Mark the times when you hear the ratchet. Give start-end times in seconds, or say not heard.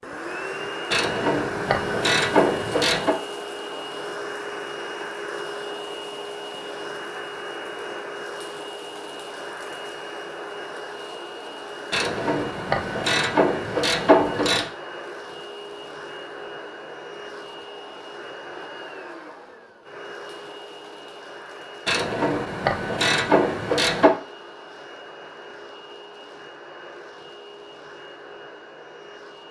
0.9-3.2, 11.9-14.7, 21.9-24.1.